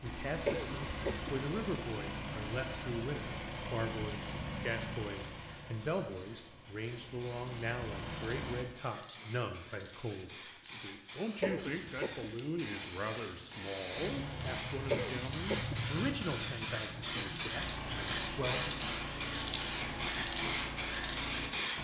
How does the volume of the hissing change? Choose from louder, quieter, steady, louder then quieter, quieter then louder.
louder.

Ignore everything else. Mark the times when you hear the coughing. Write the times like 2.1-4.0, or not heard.
0.5-1.4, 11.4-12.3, 14.9-15.8.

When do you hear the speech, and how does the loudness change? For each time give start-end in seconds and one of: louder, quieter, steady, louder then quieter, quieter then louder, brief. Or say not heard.
0.0-18.8 steady.